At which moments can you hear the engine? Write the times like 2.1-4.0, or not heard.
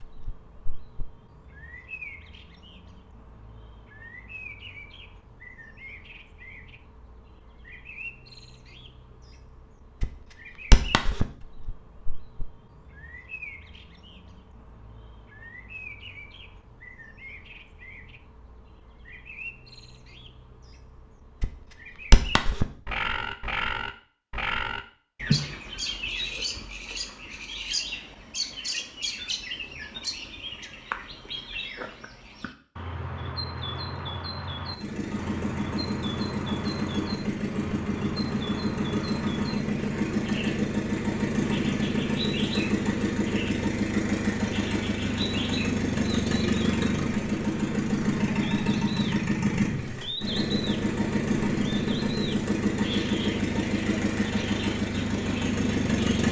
34.7-56.2.